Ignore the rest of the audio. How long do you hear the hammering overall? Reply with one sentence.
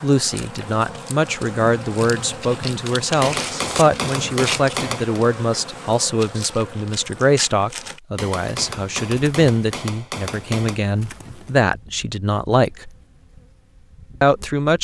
You can hear the hammering for 5 seconds altogether.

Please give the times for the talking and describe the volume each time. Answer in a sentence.
The talking can be heard from 0.0 to 12.9 s, at a steady volume; and briefly from 14.2 to 14.8 s.